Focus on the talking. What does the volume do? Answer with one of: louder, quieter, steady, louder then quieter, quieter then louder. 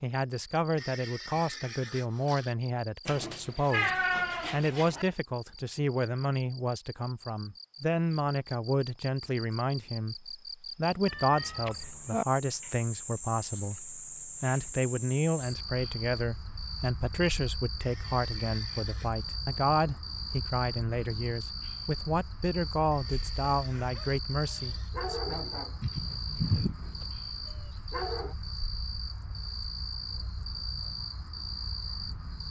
steady.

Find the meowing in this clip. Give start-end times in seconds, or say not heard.
3.0-5.0, 11.1-12.2, 25.8-26.8.